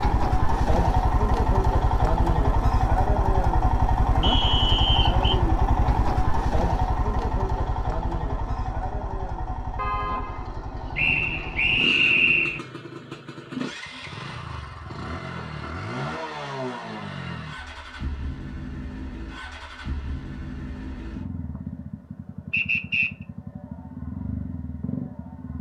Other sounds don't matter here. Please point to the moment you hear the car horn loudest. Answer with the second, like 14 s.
10 s.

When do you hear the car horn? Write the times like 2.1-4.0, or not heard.
9.8-11.8.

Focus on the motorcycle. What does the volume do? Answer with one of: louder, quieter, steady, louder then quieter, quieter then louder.
quieter.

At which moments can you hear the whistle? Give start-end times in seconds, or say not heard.
4.2-5.4, 10.9-12.6, 22.5-23.1.